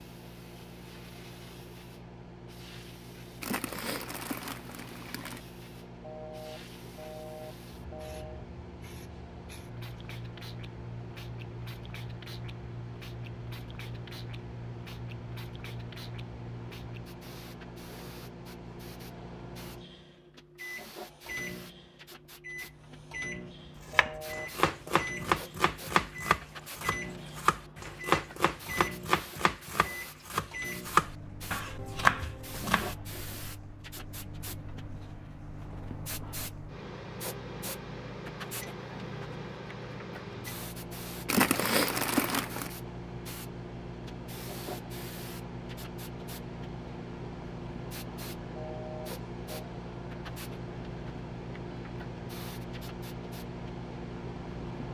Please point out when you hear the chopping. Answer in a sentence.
You can hear the chopping from 23.9 to 33.0 s.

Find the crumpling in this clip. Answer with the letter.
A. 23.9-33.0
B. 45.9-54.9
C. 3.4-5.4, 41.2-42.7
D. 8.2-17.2
C.